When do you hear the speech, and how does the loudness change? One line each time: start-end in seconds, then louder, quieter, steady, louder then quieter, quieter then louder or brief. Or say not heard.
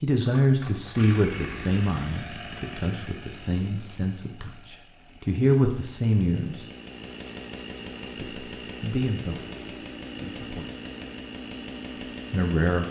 0.0-6.7 quieter then louder
8.2-10.7 brief
12.3-12.8 brief.